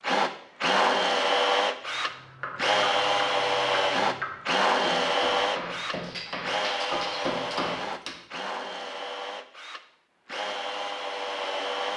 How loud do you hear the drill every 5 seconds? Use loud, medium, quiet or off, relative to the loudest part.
loud, medium, medium.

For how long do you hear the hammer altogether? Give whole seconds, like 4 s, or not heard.
6 s.